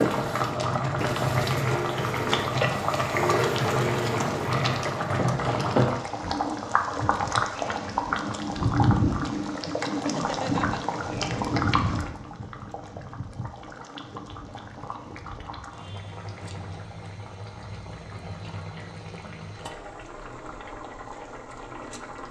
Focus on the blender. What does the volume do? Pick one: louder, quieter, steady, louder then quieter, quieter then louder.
louder.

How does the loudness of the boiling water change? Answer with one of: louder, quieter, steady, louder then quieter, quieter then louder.
quieter.